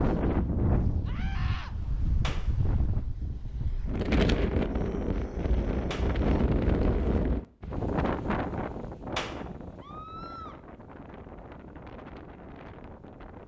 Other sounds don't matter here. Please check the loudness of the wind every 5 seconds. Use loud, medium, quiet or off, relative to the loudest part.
loud, loud, quiet.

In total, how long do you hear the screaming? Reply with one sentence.
The screaming can be heard for 3 seconds in total.